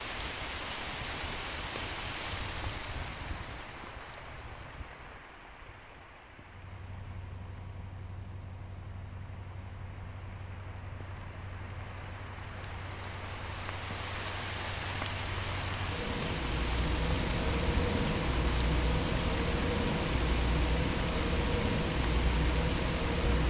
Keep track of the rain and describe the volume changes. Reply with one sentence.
The loudness of the rain goes down, then up.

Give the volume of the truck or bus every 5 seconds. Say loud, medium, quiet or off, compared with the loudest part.
off, quiet, quiet, loud, loud.